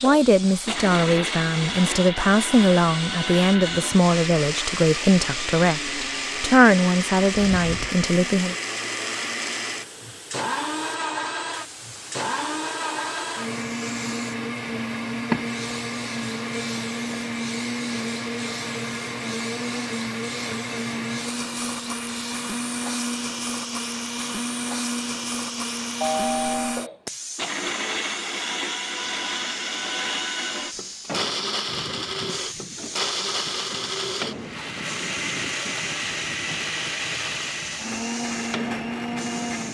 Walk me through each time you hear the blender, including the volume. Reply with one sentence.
The blender can be heard from 0.0 to 39.6 s, at a steady volume.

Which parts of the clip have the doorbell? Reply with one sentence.
The doorbell can be heard from 26.0 to 26.8 s.